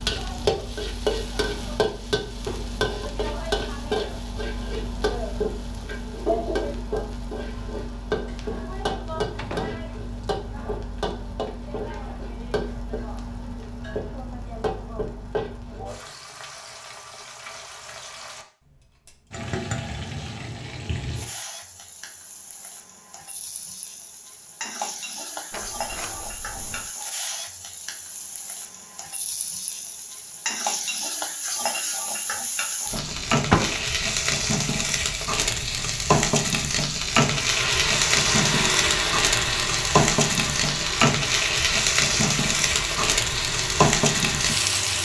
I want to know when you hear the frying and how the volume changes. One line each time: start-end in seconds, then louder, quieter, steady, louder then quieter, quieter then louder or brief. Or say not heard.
0.0-44.9 quieter then louder.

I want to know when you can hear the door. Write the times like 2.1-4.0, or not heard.
9.3-10.2, 25.5-26.9, 32.9-33.9.